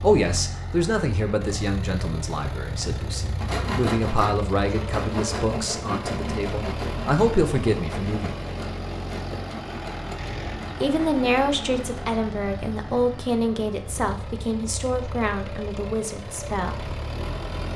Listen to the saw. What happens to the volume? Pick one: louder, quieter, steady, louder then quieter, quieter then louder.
quieter.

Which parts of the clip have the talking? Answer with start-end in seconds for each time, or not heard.
0.0-8.3, 10.8-16.9.